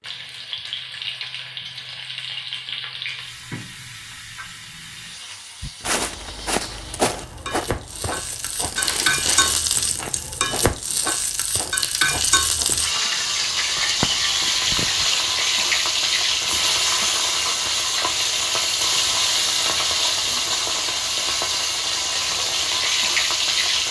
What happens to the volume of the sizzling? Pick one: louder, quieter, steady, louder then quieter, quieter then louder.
louder.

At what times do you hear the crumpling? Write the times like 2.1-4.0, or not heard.
8.8-9.5.